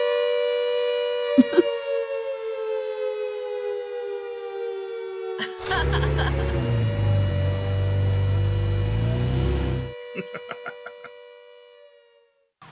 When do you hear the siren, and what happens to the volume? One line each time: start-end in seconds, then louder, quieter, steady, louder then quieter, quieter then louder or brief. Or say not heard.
0.0-12.6 quieter.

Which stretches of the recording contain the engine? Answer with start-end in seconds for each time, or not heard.
5.6-9.9.